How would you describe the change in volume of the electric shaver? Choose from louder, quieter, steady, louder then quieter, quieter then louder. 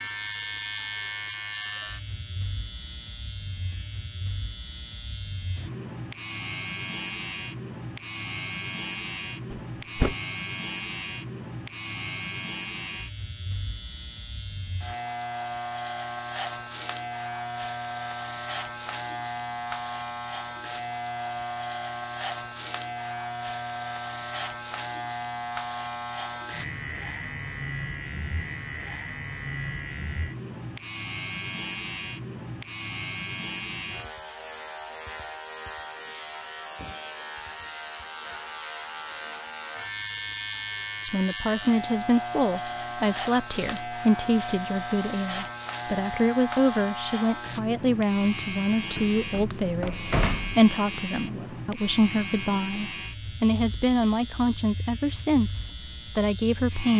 steady.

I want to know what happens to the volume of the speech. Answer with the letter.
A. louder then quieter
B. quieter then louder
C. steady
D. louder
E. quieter
C.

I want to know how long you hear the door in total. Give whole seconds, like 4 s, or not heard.
2 s.